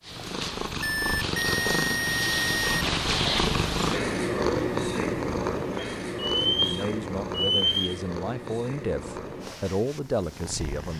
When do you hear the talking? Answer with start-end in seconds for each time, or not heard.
6.5-10.9.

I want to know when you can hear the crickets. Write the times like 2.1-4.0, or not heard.
not heard.